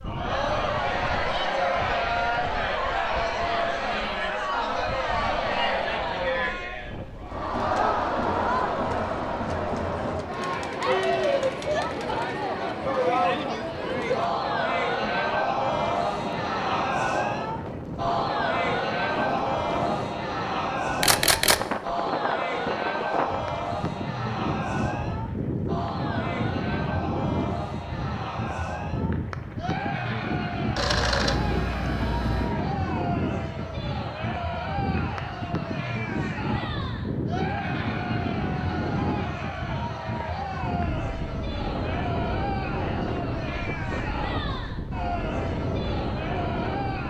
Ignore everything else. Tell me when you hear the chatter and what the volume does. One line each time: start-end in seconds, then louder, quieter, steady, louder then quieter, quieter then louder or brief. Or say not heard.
0.0-47.0 quieter.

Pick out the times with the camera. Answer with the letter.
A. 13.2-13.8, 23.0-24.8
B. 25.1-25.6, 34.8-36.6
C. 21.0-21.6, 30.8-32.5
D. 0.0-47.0
C.